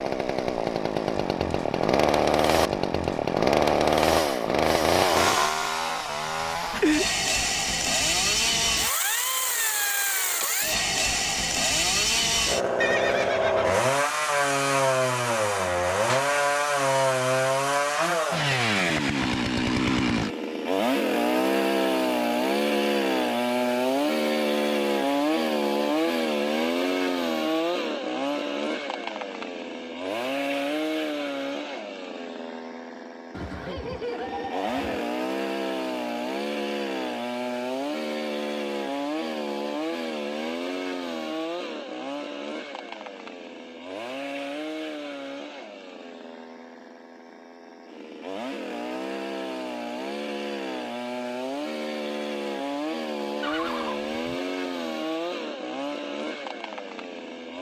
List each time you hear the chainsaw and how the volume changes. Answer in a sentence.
The chainsaw can be heard from 0.0 to 57.5 s, getting quieter.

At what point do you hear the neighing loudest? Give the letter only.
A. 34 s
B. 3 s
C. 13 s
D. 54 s
C.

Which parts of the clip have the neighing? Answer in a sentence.
You can hear the neighing from 12.8 to 13.8 s, from 33.3 to 35.0 s and from 53.4 to 54.4 s.